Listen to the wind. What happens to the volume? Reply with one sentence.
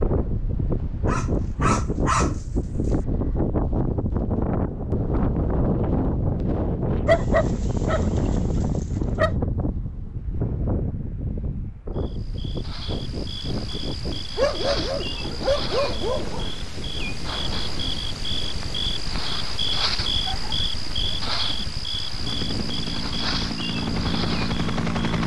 The volume of the wind goes down.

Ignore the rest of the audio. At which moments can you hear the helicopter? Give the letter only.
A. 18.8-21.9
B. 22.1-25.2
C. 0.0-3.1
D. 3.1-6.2
B.